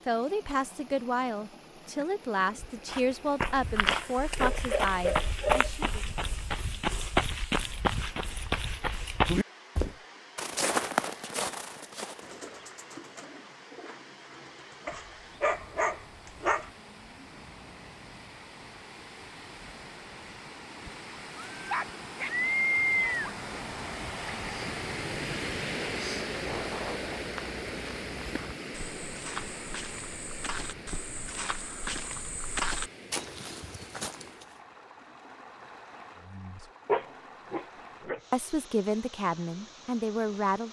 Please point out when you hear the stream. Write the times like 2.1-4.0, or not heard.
0.0-40.6.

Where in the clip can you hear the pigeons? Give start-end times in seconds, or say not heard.
12.2-15.0.